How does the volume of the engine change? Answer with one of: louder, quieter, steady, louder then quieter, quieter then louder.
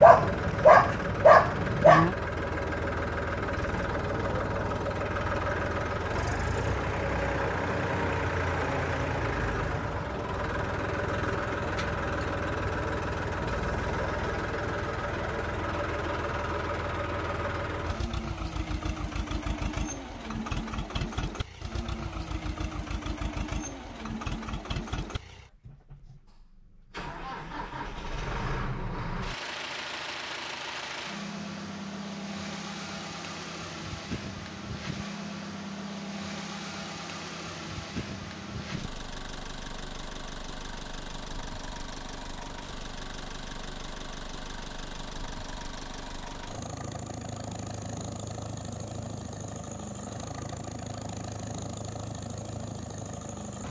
quieter.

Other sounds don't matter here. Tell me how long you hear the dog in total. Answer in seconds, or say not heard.
2 s.